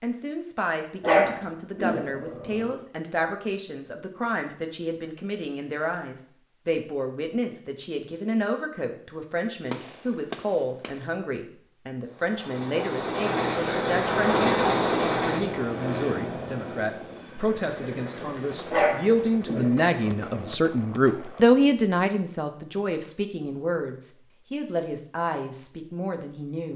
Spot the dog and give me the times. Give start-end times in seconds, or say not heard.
1.0-2.7, 18.7-20.6.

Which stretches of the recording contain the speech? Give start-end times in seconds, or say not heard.
0.0-26.7.